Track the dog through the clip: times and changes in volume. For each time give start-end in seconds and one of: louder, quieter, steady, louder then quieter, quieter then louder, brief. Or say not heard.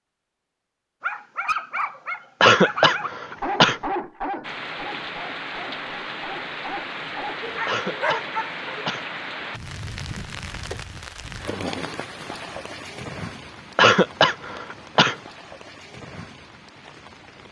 1.0-8.8 quieter then louder.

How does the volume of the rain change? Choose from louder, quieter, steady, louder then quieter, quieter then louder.
quieter.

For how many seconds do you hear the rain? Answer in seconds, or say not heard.
13 s.